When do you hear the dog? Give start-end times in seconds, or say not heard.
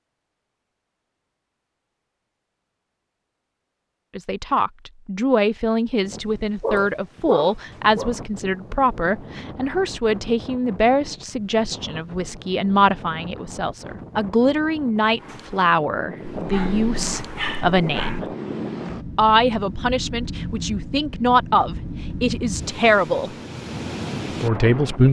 6.6-8.1, 16.4-18.2.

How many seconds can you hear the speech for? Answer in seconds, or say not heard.
19 s.